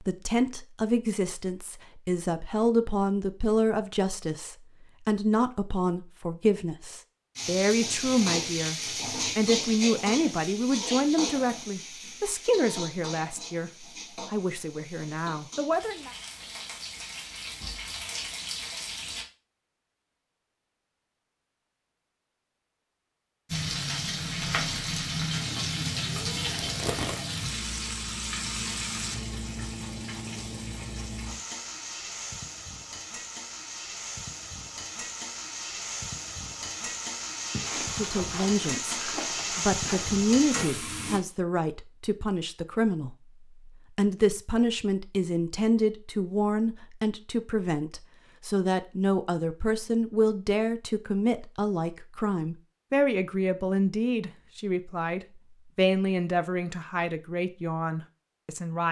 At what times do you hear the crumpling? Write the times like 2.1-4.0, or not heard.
26.6-27.2, 37.5-40.2.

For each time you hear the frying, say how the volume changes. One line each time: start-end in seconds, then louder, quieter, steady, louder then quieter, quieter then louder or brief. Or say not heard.
7.3-19.2 quieter then louder
23.5-41.2 quieter then louder.